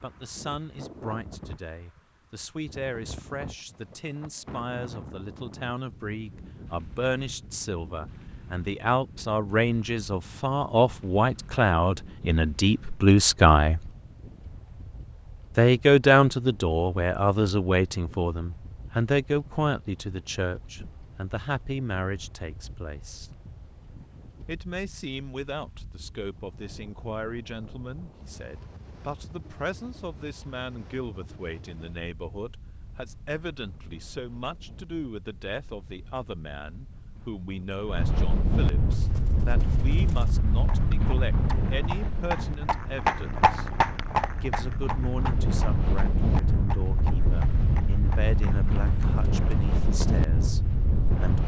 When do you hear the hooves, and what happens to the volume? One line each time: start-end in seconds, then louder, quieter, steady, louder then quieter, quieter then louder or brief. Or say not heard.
38.9-50.2 louder then quieter.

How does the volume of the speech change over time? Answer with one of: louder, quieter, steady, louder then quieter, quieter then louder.
louder then quieter.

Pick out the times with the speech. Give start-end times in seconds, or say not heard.
0.0-13.9, 15.6-23.3, 24.4-43.6, 44.4-51.4.